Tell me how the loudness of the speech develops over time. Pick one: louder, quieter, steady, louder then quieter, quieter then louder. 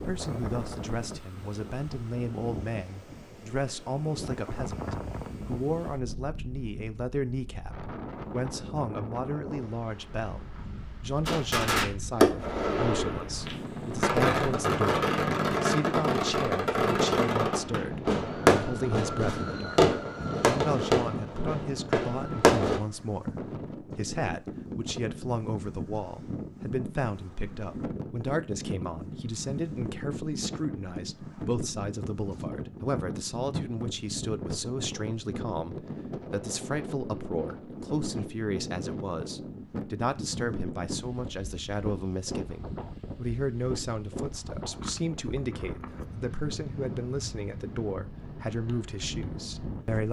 steady.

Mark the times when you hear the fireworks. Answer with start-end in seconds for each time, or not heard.
11.2-22.8.